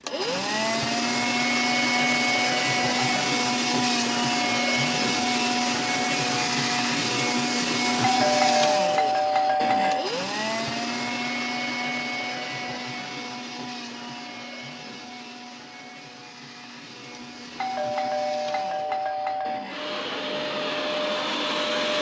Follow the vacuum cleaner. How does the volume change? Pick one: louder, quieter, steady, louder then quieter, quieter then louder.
quieter then louder.